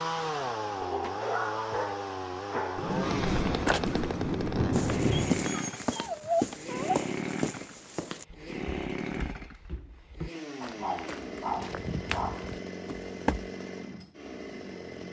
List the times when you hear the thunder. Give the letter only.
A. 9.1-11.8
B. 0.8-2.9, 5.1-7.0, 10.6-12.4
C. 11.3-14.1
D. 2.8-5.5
D.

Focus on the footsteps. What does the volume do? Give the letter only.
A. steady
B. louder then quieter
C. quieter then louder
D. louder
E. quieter
C.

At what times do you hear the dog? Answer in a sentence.
You can hear the dog from 0.8 to 2.9 s, from 5.1 to 7.0 s and from 10.6 to 12.4 s.